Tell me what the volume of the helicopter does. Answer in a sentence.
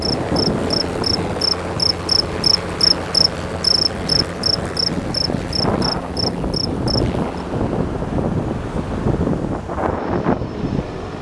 The volume of the helicopter goes down.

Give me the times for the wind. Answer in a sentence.
The wind can be heard from 0.0 to 11.1 s.